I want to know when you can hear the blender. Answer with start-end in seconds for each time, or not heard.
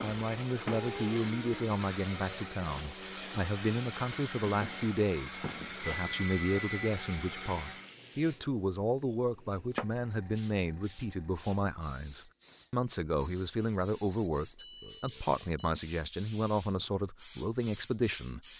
0.0-8.0.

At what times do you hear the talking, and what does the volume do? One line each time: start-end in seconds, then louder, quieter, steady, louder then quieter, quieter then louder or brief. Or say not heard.
0.0-18.4 steady.